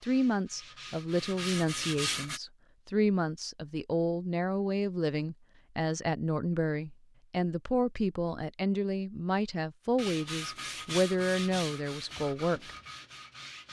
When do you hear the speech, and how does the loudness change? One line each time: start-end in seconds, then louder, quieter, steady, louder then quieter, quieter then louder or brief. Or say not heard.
0.0-12.7 steady.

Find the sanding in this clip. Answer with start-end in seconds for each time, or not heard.
0.0-2.4, 9.9-13.6.